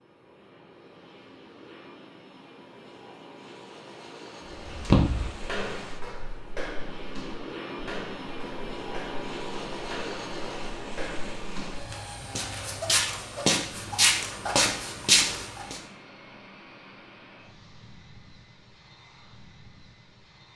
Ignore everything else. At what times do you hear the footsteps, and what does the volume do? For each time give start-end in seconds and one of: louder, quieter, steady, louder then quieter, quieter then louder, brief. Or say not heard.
4.5-15.8 quieter then louder.